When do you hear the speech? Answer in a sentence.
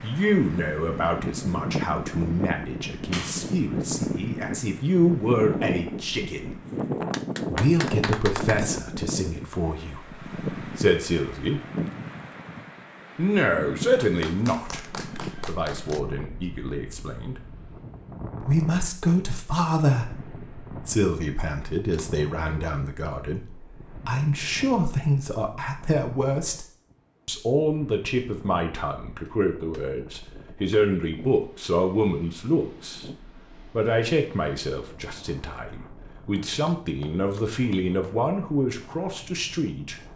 The speech can be heard from 0.0 to 6.5 s, from 7.5 to 11.6 s, from 13.2 to 14.8 s, from 15.4 to 17.4 s, from 18.4 to 26.6 s and from 27.2 to 40.0 s.